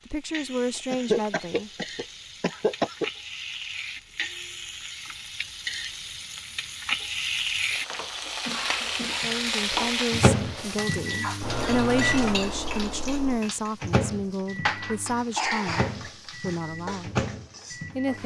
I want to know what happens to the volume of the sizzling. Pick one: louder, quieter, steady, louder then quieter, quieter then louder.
louder then quieter.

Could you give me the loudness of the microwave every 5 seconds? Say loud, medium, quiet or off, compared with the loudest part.
off, off, loud, medium.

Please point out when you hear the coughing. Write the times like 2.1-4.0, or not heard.
0.9-3.1, 8.4-9.4, 15.3-16.0.